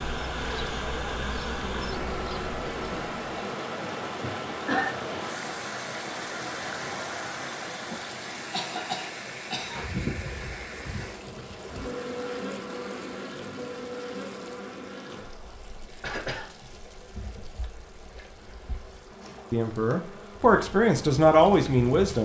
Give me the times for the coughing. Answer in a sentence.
You can hear the coughing from 4.2 to 4.9 s, from 8.5 to 9.8 s and from 16.0 to 16.4 s.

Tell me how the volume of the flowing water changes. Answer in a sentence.
The loudness of the flowing water goes down.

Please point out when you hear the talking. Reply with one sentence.
The talking can be heard from 19.5 to 22.2 s.